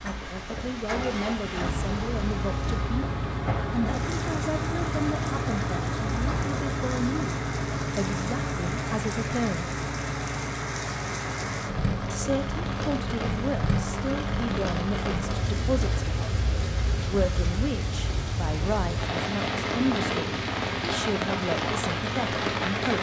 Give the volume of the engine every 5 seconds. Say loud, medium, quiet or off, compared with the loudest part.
loud, loud, medium, medium, medium.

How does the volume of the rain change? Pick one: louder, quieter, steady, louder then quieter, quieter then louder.
louder.